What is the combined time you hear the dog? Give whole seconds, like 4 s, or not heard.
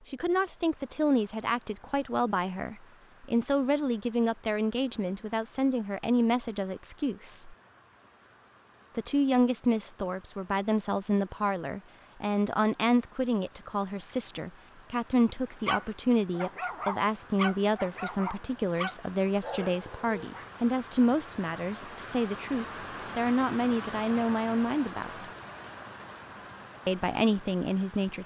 5 s.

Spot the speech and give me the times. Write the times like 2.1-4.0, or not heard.
0.1-7.5, 8.9-25.2, 26.9-28.2.